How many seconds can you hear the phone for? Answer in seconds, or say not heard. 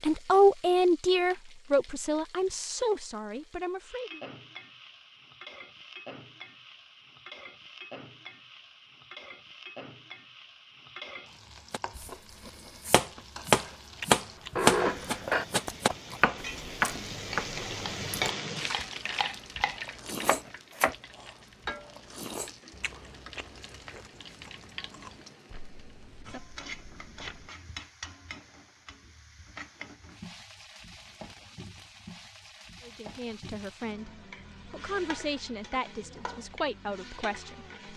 3 s.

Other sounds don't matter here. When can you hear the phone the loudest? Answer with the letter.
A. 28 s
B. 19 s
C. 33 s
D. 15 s
D.